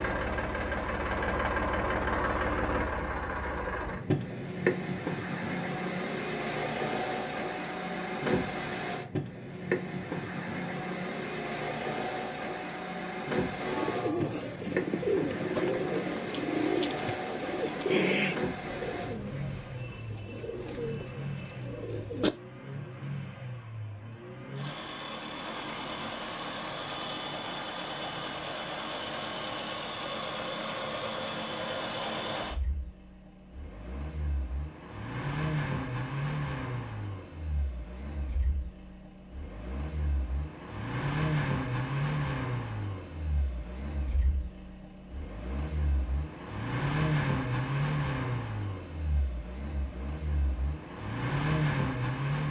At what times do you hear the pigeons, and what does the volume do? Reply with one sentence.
You can hear the pigeons from 13.6 to 22.3 s, getting quieter.